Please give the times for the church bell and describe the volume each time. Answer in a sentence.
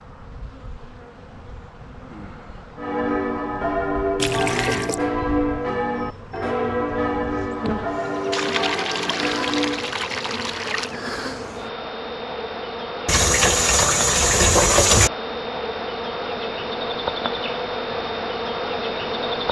You can hear the church bell from 2.8 to 10.0 s, at a steady volume.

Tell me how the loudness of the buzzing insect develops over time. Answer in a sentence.
The loudness of the buzzing insect goes up.